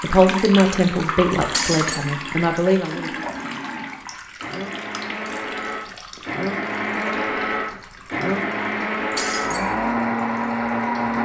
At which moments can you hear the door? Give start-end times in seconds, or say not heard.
not heard.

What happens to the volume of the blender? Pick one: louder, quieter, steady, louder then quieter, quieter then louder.
louder.